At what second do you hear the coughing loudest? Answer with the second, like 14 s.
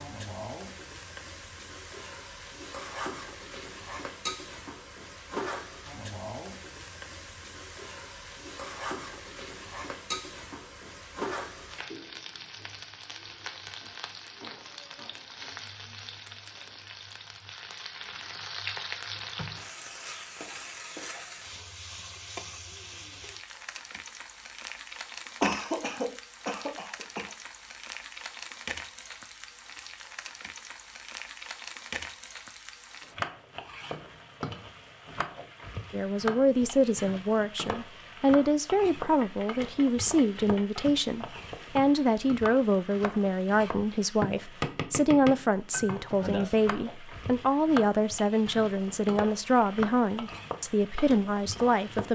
26 s.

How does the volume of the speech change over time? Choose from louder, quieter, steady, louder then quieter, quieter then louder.
steady.